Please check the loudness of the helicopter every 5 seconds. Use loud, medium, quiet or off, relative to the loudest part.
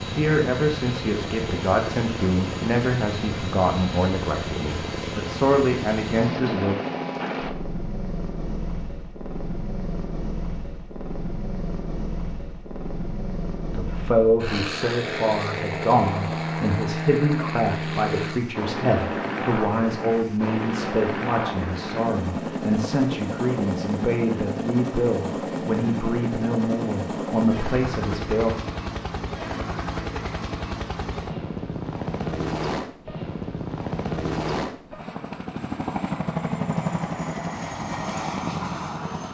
loud, loud, medium, loud, loud, loud, loud, loud.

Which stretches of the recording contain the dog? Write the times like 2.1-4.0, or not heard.
not heard.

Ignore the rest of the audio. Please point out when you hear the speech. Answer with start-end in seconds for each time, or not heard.
0.1-6.8, 13.7-28.6.